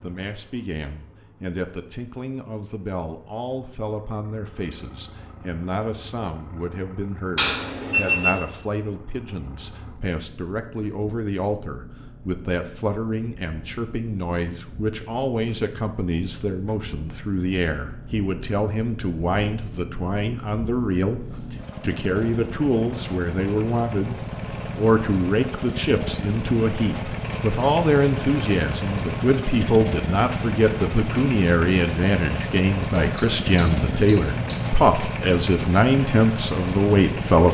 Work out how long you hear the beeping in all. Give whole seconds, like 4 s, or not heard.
3 s.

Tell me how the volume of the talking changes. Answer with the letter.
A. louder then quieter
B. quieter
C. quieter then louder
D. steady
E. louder
E.